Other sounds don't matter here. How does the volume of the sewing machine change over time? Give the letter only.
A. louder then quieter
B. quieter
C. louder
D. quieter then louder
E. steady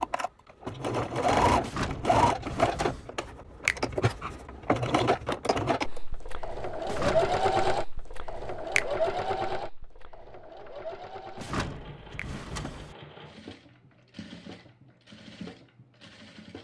B.